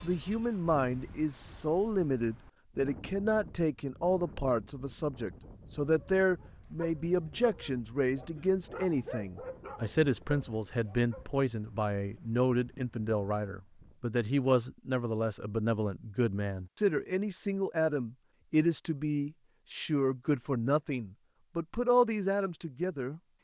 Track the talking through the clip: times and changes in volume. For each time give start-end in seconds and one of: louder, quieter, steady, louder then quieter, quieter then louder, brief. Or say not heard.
0.0-23.2 steady.